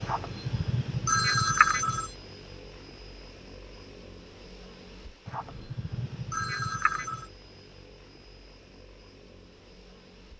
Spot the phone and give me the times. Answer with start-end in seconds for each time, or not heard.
0.0-2.1, 5.2-7.3.